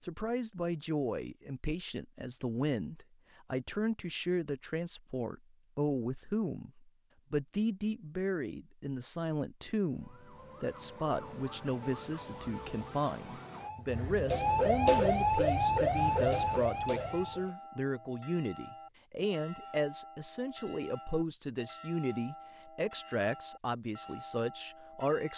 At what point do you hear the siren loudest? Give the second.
15 s.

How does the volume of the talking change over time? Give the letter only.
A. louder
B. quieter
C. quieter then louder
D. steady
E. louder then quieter
D.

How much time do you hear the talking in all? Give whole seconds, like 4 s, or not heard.
25 s.